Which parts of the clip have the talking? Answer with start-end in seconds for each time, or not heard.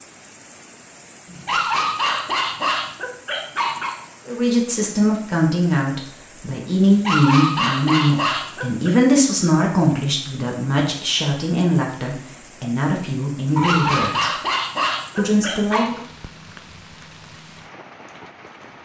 4.2-14.3, 15.2-16.0.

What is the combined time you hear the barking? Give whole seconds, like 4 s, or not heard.
7 s.